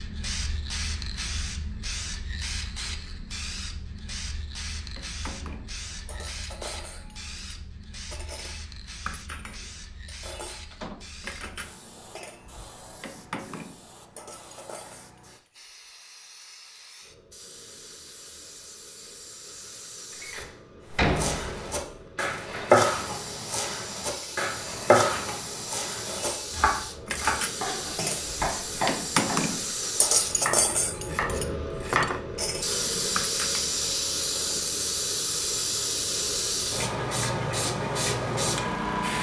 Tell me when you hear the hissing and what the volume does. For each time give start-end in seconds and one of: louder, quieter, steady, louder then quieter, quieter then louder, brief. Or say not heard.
0.0-39.1 quieter then louder.